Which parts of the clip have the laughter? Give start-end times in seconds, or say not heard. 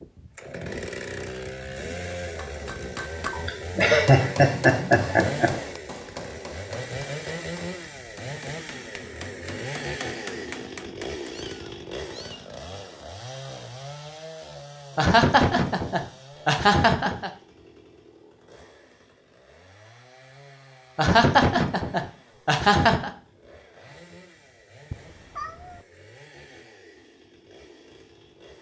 3.3-5.6, 14.9-17.3, 20.9-23.1.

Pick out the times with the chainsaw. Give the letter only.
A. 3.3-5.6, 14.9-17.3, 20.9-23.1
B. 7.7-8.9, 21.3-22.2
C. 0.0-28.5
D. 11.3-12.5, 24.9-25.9
C.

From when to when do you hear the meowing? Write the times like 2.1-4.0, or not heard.
11.3-12.5, 24.9-25.9.